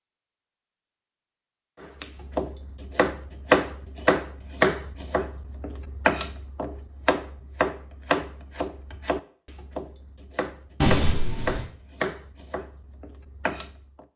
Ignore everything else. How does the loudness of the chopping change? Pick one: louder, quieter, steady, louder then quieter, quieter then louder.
quieter.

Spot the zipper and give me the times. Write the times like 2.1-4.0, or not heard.
10.8-11.7.